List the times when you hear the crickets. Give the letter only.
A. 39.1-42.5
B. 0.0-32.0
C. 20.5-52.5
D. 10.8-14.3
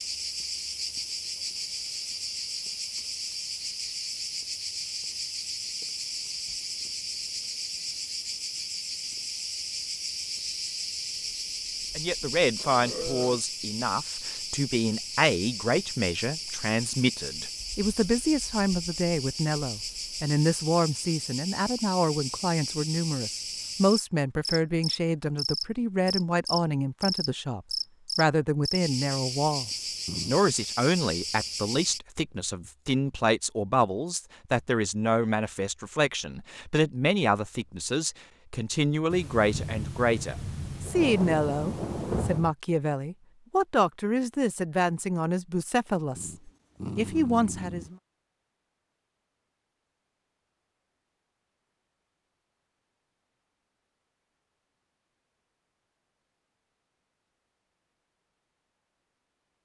B.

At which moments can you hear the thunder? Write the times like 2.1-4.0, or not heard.
39.1-42.5.